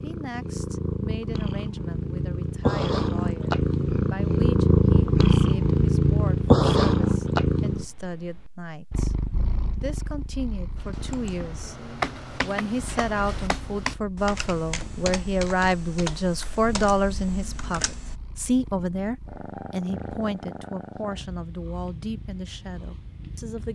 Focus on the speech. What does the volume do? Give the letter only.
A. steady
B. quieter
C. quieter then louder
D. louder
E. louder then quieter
E.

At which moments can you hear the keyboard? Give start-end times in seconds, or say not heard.
10.8-18.2.